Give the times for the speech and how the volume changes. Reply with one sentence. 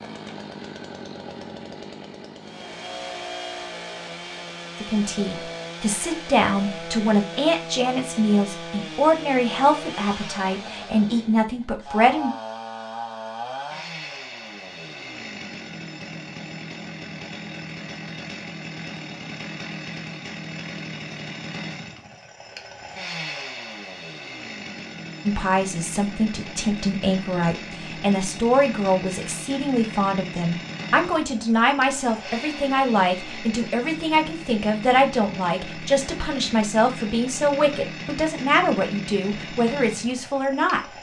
You can hear the speech from 4.8 to 12.3 s, at a steady volume; and from 25.2 to 40.9 s, at a steady volume.